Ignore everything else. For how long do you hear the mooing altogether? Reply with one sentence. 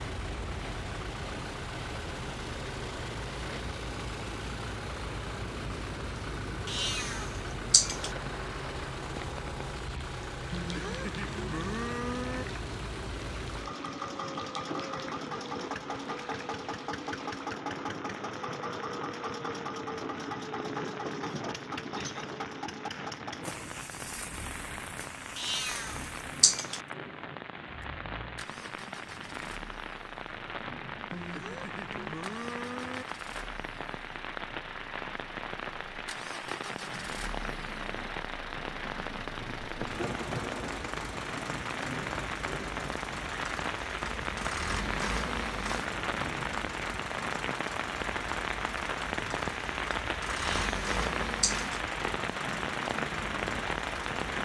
The mooing can be heard for 4 seconds in total.